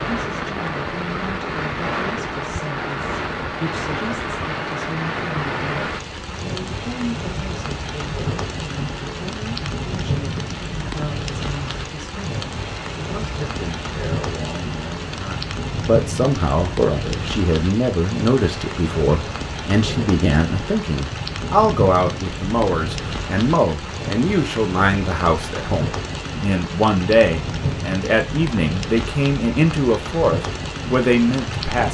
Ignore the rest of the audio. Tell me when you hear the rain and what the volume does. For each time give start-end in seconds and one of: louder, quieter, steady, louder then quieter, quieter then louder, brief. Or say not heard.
0.0-31.8 steady.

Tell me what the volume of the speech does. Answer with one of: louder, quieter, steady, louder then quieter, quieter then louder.
louder.